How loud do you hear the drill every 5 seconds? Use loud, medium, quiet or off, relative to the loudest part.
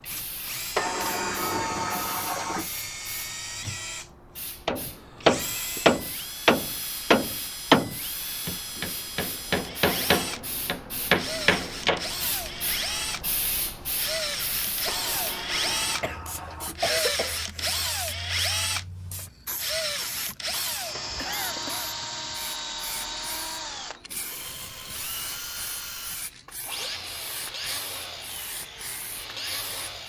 medium, medium, loud, loud, medium, medium.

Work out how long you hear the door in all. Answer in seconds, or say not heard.
5 s.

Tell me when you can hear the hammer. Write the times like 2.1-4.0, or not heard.
4.7-12.1.